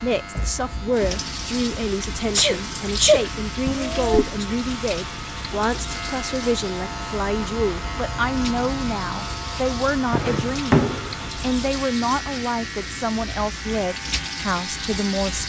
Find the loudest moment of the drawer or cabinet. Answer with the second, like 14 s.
11 s.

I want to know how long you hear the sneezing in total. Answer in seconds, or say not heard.
2 s.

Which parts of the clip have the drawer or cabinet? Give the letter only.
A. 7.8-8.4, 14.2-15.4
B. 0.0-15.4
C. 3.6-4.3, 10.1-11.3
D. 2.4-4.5
C.